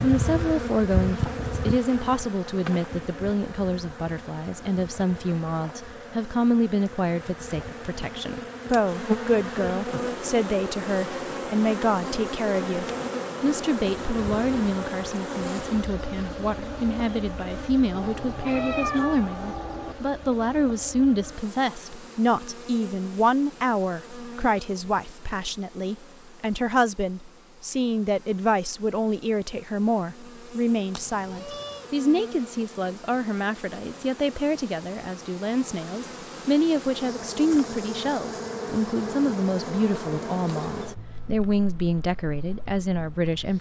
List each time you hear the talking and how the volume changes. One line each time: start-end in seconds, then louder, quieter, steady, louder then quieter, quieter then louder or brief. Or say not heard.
0.0-43.5 steady.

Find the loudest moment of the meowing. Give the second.
19 s.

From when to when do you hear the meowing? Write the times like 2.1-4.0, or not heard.
17.9-19.9, 30.9-31.9.